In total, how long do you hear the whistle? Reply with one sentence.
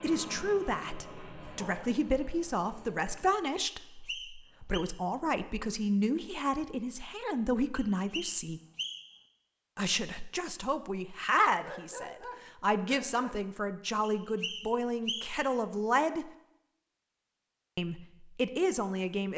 The whistle can be heard for 4 seconds in total.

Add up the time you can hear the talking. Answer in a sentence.
The talking can be heard for 17 seconds in total.